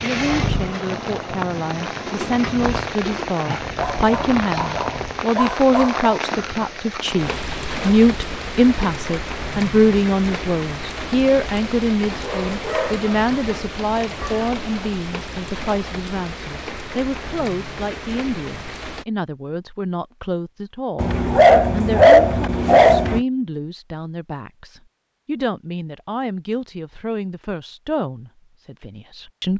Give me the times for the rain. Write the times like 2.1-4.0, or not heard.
0.0-19.1.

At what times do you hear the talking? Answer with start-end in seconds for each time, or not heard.
0.0-29.5.